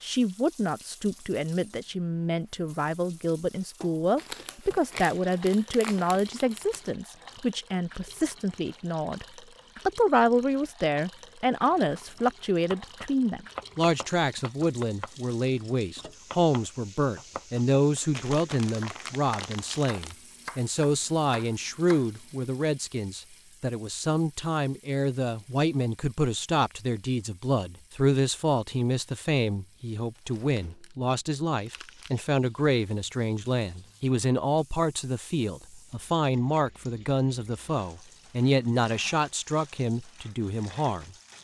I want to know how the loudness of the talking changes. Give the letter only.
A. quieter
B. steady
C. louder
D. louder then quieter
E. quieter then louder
B.